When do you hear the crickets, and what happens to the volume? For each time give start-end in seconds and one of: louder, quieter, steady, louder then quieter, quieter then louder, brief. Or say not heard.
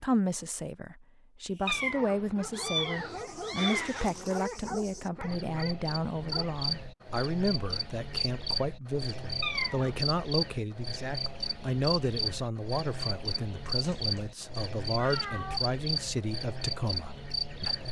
2.8-17.8 louder.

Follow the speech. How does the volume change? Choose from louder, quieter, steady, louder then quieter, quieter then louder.
steady.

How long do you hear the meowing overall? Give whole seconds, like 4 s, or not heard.
5 s.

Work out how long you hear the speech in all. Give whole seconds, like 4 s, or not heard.
18 s.